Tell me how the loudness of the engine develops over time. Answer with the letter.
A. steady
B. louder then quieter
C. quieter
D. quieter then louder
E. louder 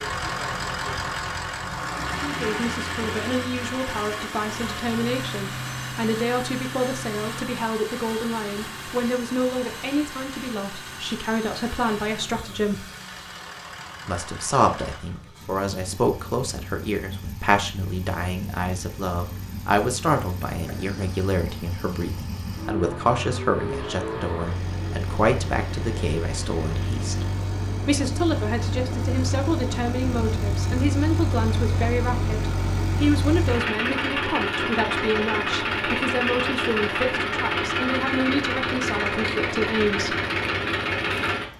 D.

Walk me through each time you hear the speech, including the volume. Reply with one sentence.
You can hear the speech from 2.2 to 12.8 s, at a steady volume; and from 14.1 to 40.1 s, at a steady volume.